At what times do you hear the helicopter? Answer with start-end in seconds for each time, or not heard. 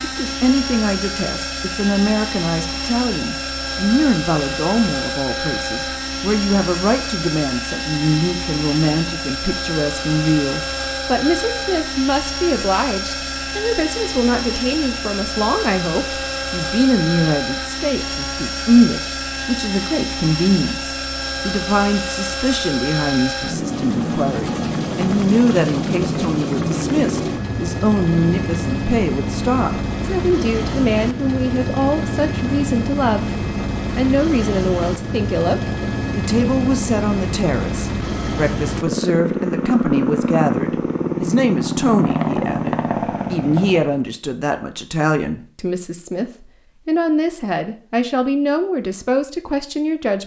0.0-44.0.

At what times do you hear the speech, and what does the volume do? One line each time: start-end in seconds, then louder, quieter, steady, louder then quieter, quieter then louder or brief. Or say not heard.
0.0-50.2 steady.